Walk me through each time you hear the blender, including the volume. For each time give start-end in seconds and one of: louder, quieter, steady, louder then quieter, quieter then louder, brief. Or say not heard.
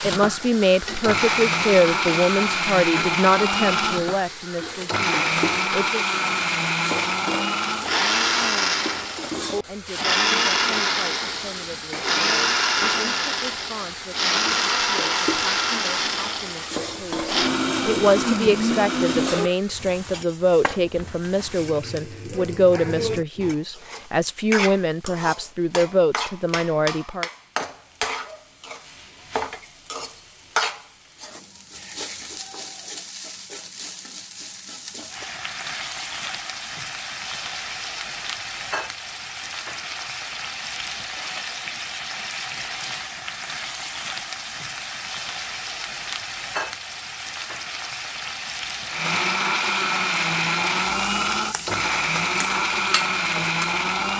0.0-19.6 steady
48.9-54.1 steady.